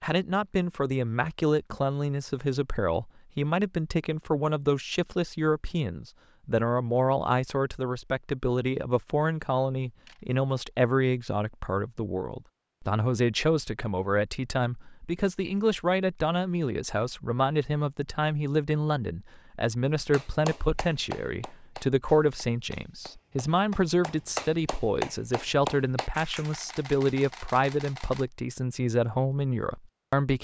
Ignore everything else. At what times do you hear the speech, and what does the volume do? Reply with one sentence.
The speech can be heard from 0.0 to 30.3 s, at a steady volume.